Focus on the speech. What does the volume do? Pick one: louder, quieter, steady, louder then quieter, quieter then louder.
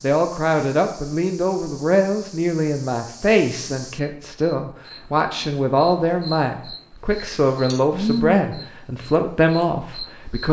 steady.